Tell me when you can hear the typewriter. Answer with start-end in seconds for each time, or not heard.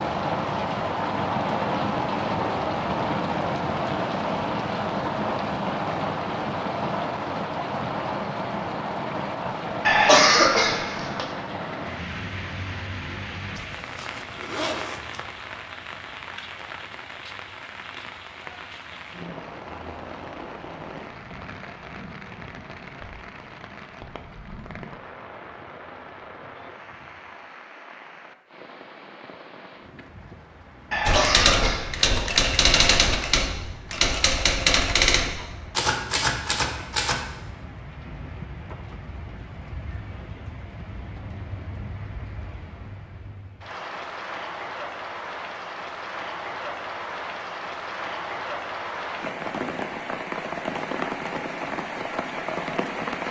31.1-37.2.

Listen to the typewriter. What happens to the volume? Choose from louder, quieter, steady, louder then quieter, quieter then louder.
steady.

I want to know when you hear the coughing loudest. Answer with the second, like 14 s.
10 s.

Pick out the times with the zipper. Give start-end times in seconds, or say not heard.
13.6-15.2.